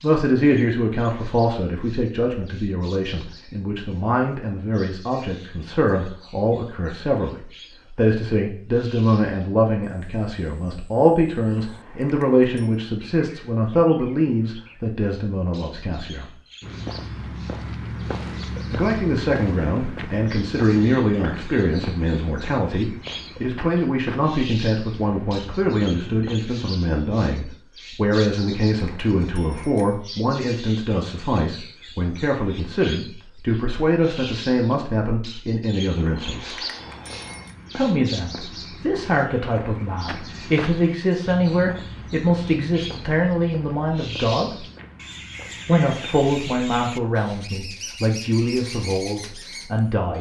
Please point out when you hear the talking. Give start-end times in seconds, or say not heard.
0.0-16.4, 18.7-36.5, 37.8-44.6, 45.6-50.1.